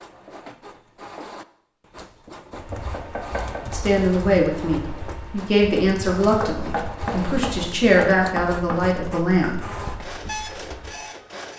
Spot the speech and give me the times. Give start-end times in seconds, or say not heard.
3.7-9.7.